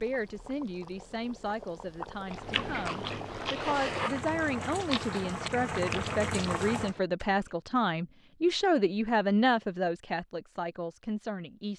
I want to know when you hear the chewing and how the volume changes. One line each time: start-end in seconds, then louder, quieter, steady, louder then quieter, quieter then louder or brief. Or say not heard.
2.3-7.5 quieter.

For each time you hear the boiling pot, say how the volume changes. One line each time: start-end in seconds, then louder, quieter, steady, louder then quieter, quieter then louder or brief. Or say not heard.
0.0-7.0 louder.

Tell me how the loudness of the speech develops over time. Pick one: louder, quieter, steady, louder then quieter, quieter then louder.
louder.